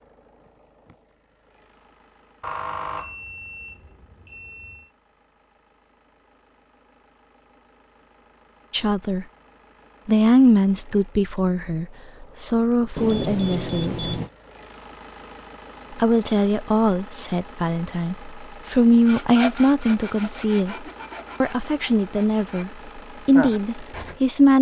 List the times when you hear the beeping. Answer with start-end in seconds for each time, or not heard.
2.4-4.9, 12.9-14.3.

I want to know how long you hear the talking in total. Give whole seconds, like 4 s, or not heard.
13 s.